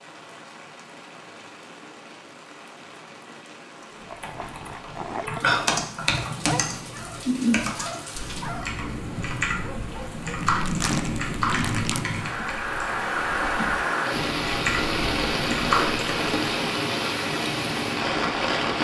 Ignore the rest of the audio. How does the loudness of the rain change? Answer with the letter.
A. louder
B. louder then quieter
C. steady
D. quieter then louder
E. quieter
A.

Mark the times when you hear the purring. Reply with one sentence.
You can't hear the purring here.